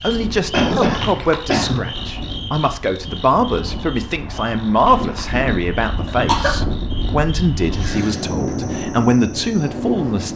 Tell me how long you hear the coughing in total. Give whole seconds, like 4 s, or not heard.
2 s.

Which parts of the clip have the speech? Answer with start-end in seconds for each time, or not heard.
0.0-10.3.